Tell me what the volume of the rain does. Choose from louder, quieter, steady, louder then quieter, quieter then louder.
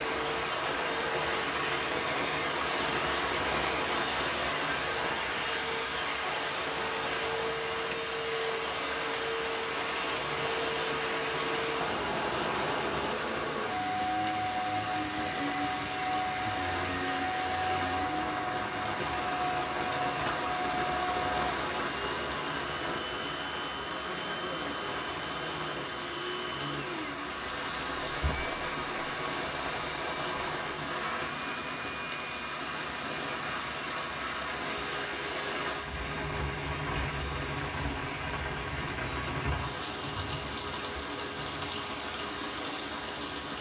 steady.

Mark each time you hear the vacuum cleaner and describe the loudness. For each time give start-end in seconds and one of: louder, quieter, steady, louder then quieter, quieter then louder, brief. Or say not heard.
0.0-43.5 quieter.